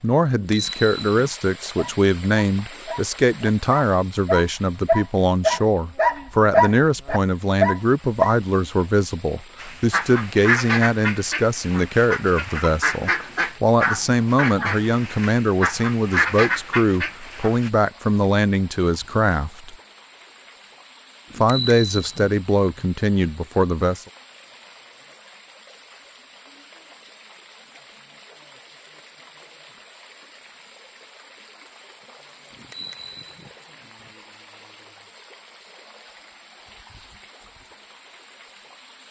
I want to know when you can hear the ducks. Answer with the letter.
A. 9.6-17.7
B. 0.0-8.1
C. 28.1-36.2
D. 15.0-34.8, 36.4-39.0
A.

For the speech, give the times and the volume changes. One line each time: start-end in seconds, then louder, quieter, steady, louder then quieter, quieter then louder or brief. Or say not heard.
0.0-19.8 steady
21.4-24.1 brief.